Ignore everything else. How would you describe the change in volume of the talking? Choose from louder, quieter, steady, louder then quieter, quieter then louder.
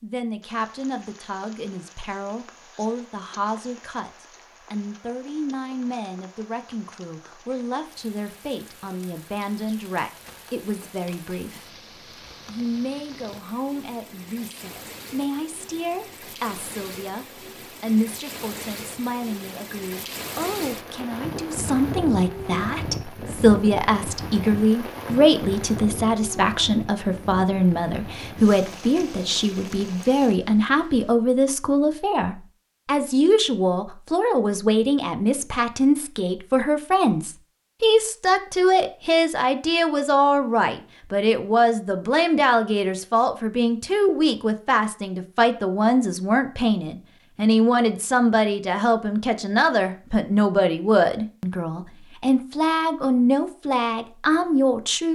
louder.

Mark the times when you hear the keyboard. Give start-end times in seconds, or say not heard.
not heard.